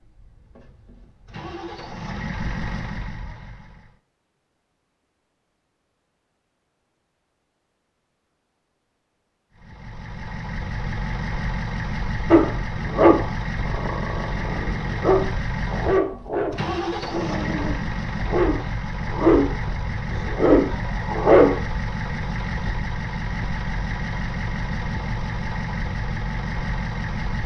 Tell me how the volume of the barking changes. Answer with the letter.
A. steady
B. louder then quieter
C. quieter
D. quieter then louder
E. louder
D.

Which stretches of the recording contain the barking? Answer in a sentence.
The barking can be heard from 12.3 to 21.6 s.